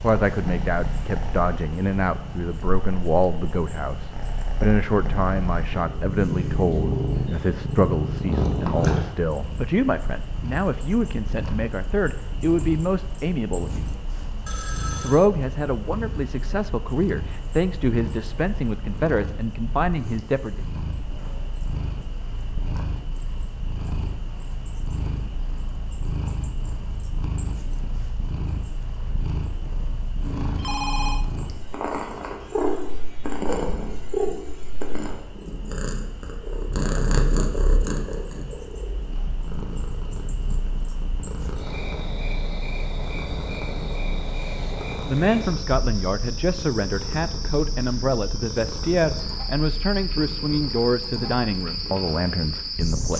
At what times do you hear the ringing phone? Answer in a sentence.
You can hear the ringing phone from 14.4 to 15.3 s and from 30.2 to 31.2 s.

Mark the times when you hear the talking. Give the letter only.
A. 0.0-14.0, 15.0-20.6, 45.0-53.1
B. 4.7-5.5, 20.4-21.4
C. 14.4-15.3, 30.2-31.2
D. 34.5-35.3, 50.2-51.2
A.